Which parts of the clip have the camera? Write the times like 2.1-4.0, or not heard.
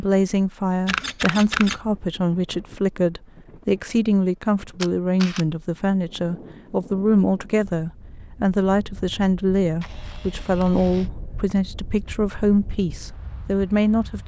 0.8-1.8, 4.8-5.5, 9.8-11.1.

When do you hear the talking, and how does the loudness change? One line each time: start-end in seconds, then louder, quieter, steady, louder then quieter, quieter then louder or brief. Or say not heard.
0.0-14.2 steady.